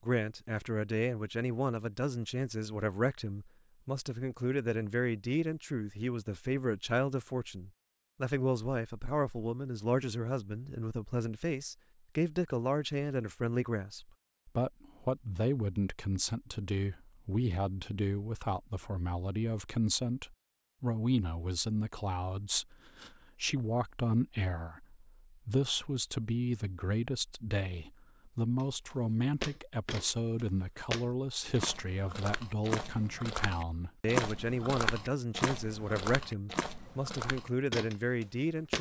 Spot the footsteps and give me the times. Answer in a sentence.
The footsteps can be heard from 28.6 to 38.7 s.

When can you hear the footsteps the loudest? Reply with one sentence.
The loudest moment of the footsteps is at 34 seconds.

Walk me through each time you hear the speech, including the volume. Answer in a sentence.
You can hear the speech from 0.0 to 38.7 s, at a steady volume.